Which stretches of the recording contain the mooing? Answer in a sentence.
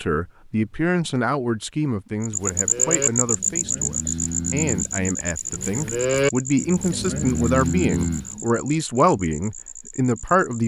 The mooing can be heard from 2.3 to 8.5 s.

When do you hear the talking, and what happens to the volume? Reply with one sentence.
You can hear the talking from 0.0 to 10.6 s, getting quieter then louder.